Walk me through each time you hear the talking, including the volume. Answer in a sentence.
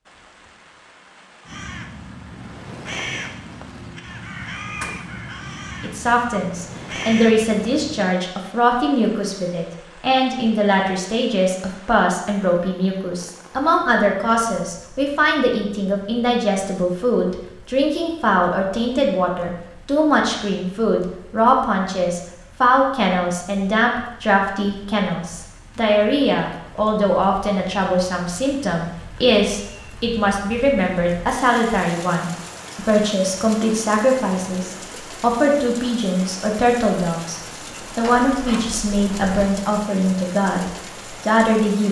You can hear the talking from 5.8 to 41.8 s, at a steady volume.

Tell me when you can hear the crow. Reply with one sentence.
The crow can be heard from 1.4 to 8.1 s.